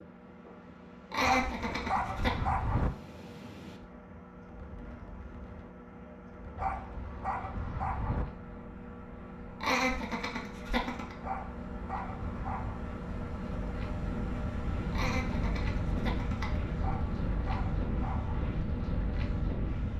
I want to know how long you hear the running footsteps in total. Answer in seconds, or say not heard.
not heard.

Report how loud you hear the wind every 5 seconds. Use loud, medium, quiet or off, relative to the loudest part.
quiet, quiet, medium, loud.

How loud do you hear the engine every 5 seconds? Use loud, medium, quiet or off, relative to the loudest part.
medium, medium, loud, loud.